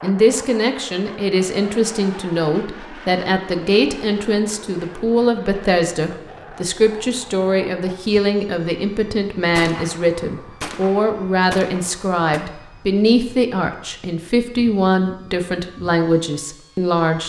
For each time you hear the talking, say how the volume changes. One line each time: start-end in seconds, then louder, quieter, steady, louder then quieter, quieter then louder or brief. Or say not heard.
0.0-17.2 steady.